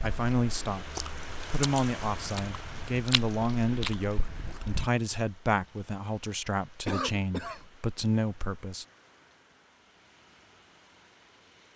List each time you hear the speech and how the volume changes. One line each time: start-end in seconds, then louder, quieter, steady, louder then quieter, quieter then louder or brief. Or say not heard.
0.0-8.8 steady.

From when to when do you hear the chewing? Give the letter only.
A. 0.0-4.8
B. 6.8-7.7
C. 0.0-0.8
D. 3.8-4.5
A.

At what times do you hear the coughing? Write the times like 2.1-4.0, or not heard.
6.8-7.7.